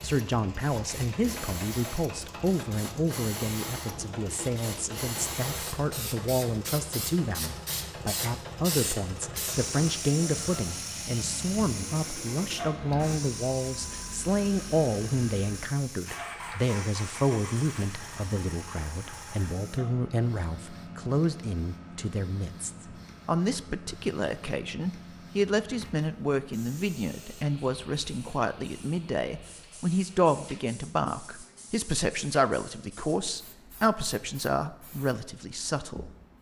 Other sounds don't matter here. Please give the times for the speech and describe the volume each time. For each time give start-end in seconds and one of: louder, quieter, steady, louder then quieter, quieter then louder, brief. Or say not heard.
0.0-36.1 steady.